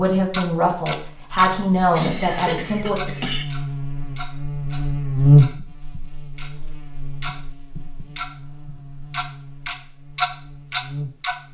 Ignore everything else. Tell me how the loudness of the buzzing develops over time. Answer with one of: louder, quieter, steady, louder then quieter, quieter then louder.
louder then quieter.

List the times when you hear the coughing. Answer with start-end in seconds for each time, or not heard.
1.9-3.5.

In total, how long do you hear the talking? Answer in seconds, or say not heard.
3 s.